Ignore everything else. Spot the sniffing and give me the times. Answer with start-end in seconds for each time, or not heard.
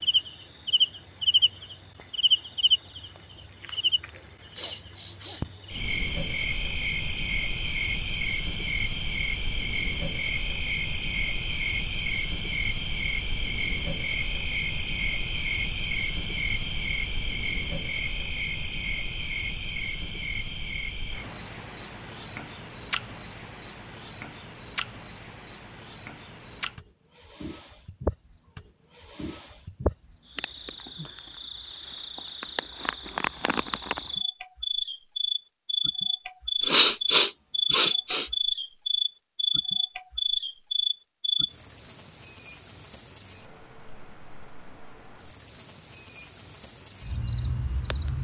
4.5-5.5, 36.6-38.3.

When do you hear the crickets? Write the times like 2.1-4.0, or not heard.
0.0-48.2.